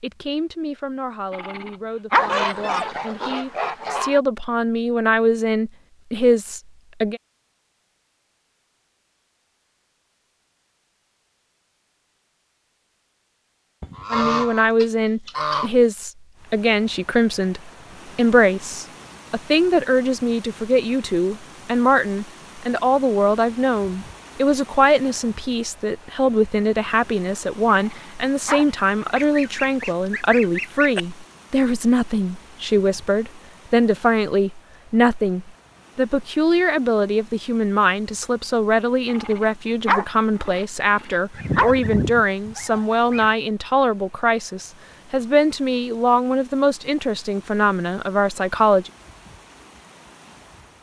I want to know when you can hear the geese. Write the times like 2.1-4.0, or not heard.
2.1-4.2, 13.8-15.7, 29.0-31.1, 41.3-43.3.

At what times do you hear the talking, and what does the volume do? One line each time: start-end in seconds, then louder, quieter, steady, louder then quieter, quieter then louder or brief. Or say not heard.
0.0-7.2 louder
14.1-48.9 steady.